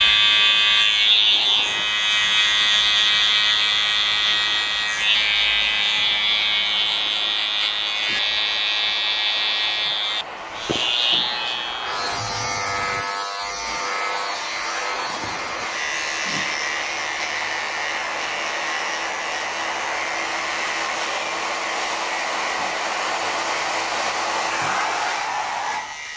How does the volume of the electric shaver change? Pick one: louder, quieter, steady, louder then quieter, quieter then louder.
quieter.